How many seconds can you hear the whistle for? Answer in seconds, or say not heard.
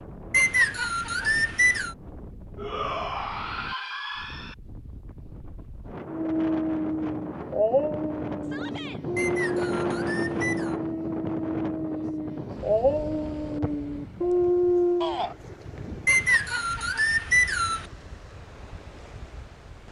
5 s.